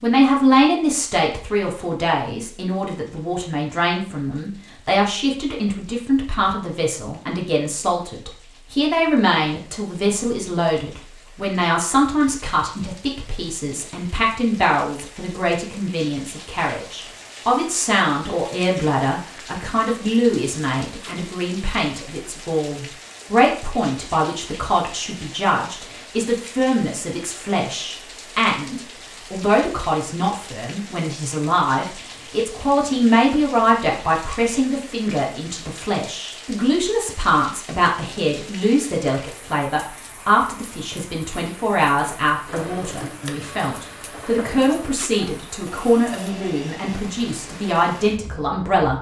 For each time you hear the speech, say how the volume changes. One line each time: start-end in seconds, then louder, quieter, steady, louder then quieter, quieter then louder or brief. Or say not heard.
0.0-48.9 steady.